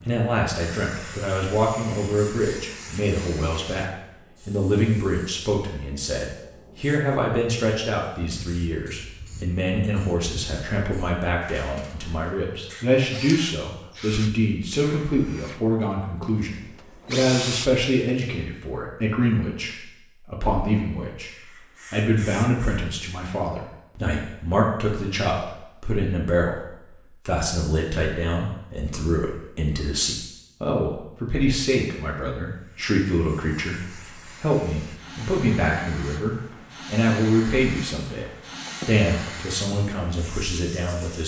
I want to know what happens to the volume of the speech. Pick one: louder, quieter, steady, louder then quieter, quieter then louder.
steady.